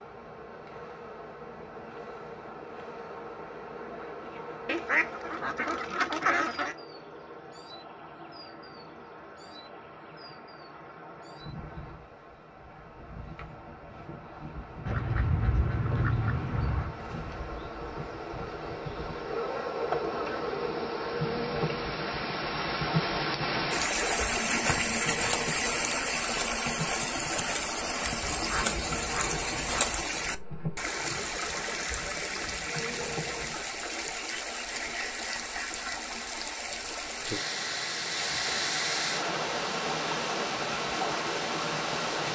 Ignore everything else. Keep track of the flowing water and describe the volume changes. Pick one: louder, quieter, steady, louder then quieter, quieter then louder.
louder.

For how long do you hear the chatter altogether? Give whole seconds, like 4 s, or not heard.
not heard.